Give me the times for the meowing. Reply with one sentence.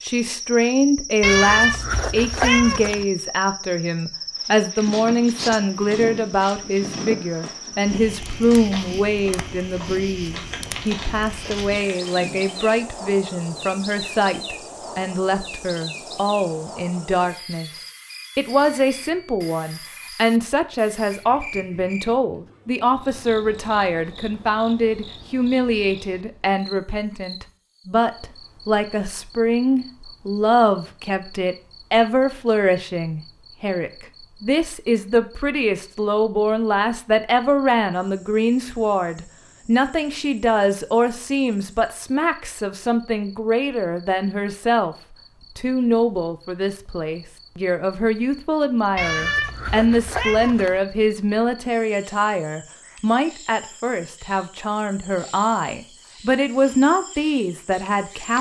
You can hear the meowing from 1.2 to 3.0 s and from 49.0 to 50.8 s.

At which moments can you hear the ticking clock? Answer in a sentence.
The ticking clock can't be heard in this clip.